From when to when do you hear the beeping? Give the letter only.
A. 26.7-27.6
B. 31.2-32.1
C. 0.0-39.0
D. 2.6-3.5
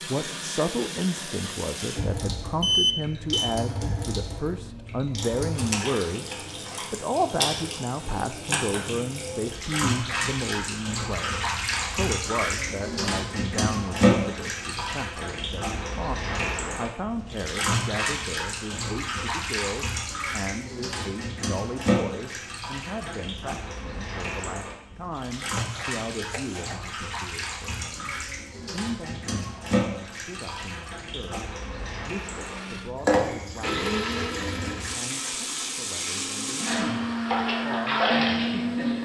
D.